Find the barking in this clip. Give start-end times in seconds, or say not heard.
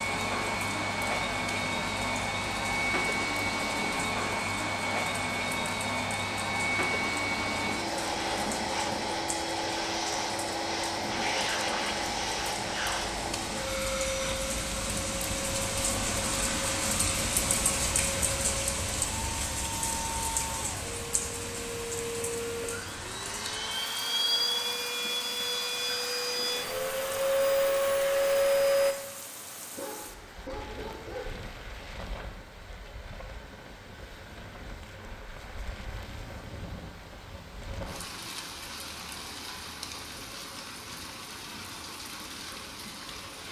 29.8-31.3.